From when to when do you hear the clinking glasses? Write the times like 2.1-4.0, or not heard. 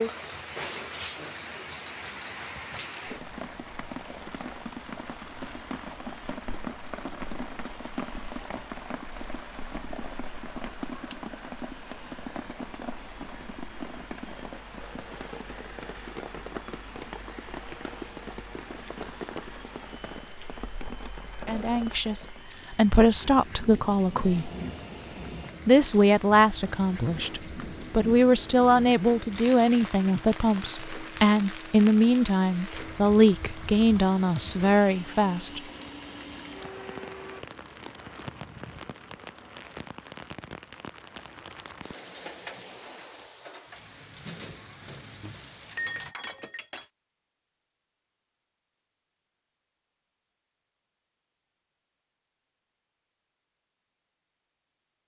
45.2-46.9.